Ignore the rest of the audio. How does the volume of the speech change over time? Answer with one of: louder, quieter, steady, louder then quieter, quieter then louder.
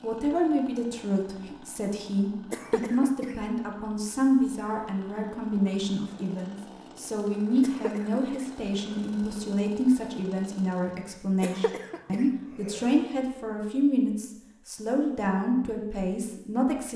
steady.